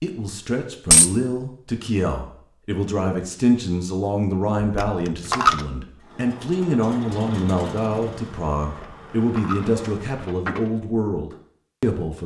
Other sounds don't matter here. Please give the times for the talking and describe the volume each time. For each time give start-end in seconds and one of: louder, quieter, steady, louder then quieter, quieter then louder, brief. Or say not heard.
0.0-12.2 steady.